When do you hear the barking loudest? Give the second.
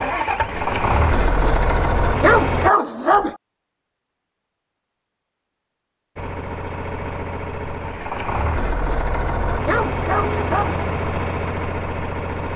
2 s.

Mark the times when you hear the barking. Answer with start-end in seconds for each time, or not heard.
1.4-3.4, 8.8-10.8.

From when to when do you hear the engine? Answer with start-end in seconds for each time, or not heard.
0.0-2.7, 6.2-12.5.